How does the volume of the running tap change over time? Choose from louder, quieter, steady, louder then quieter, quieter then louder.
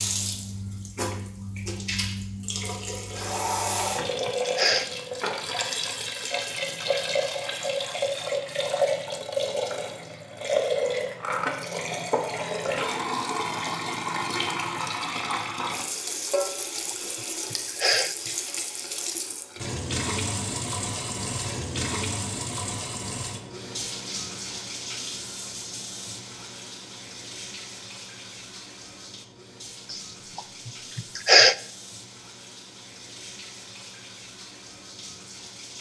quieter.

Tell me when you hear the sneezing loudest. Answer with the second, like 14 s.
31 s.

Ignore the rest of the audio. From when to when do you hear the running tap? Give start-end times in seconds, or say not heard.
0.0-35.7.